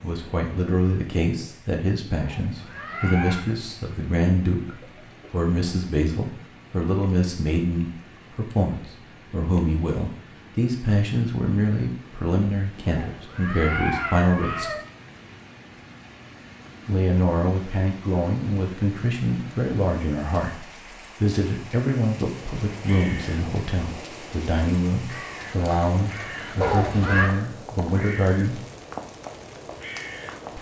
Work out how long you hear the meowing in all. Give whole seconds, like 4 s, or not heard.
4 s.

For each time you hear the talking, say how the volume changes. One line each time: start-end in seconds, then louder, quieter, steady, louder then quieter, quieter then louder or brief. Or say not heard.
0.0-14.7 steady
16.9-28.6 steady.